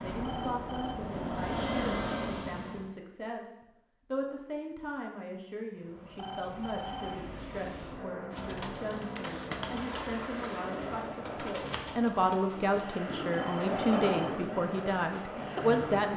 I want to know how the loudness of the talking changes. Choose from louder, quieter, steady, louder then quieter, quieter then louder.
louder.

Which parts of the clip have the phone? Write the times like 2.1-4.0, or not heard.
0.2-1.0, 6.2-7.7, 13.3-14.3.